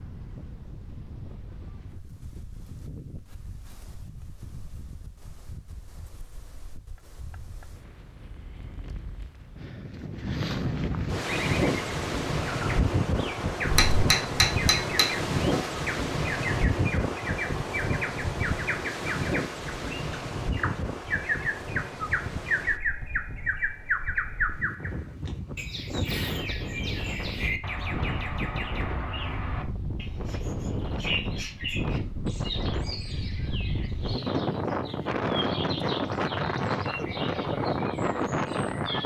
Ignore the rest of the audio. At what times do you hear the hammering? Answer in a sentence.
The hammering can be heard from 13.7 to 15.7 s.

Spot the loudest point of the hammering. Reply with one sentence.
The loudest moment of the hammering is at 14 seconds.